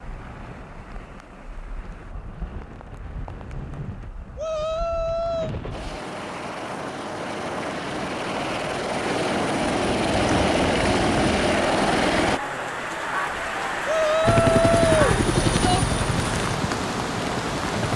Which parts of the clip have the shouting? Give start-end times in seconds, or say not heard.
4.3-5.5, 13.8-15.8.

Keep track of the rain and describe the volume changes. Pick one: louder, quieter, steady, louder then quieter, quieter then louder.
louder.